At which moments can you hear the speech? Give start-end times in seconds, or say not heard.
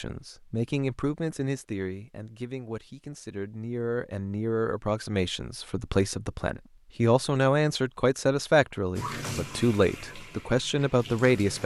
0.0-11.6.